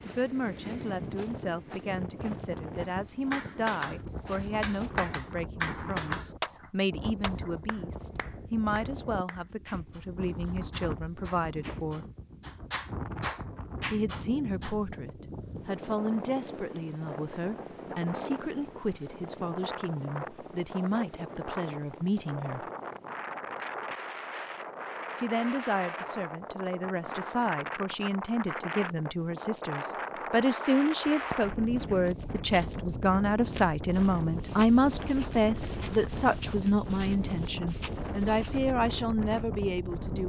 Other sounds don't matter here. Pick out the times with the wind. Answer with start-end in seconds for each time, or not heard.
0.0-40.2.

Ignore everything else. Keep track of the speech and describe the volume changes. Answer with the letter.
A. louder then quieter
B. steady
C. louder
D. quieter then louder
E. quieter
C.